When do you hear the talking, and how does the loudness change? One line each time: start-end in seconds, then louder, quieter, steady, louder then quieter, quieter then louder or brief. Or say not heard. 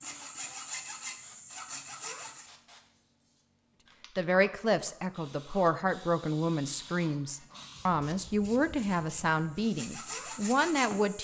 4.2-11.1 steady.